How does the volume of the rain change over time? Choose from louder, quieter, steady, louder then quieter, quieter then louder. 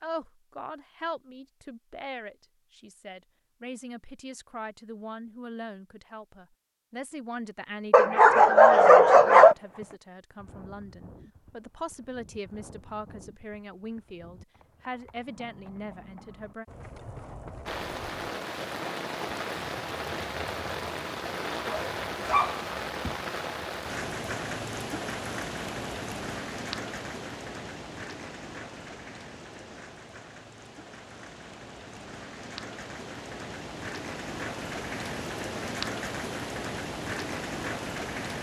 quieter then louder.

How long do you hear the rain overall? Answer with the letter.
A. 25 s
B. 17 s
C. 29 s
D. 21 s
D.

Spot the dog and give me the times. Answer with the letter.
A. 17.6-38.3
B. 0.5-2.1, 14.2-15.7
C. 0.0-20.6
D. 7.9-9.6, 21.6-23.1
D.